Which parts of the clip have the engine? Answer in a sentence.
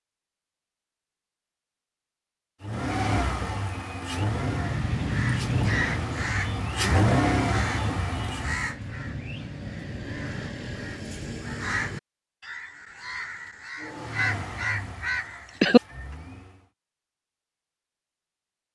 You can hear the engine from 2.6 to 8.7 s and from 13.8 to 16.7 s.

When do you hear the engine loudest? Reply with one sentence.
The loudest moment of the engine is at 7 seconds.